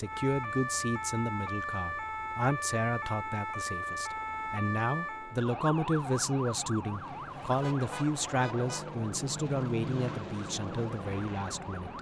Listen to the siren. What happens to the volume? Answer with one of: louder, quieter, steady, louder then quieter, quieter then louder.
quieter.